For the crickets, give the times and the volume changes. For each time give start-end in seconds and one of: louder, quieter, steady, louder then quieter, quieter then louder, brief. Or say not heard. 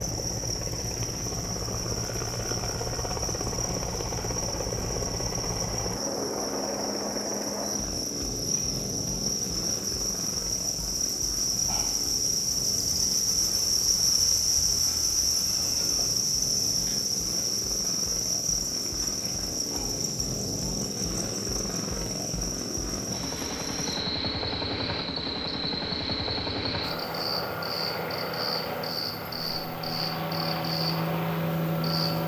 0.0-32.2 louder then quieter.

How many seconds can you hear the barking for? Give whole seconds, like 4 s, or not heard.
not heard.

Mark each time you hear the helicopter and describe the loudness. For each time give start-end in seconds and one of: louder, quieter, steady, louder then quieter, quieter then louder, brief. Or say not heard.
0.0-32.2 quieter then louder.